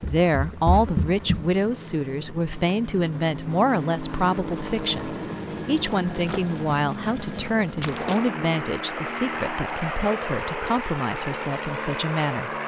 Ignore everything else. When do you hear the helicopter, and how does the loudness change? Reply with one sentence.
You can hear the helicopter from 0.0 to 12.6 s, getting louder.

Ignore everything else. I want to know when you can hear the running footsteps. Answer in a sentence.
The running footsteps can be heard from 0.0 to 1.6 s and from 6.2 to 8.2 s.